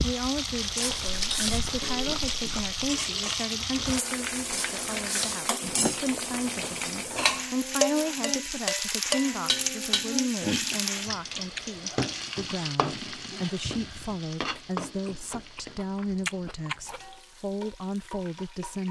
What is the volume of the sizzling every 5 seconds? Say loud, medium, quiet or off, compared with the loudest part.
loud, loud, loud, quiet.